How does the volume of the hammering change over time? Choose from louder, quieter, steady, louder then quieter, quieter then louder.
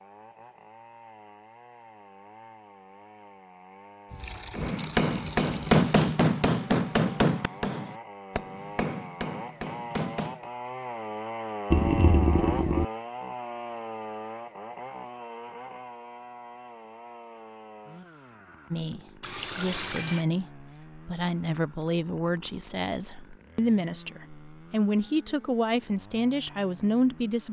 quieter.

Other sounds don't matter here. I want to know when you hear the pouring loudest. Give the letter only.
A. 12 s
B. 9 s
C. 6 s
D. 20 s
A.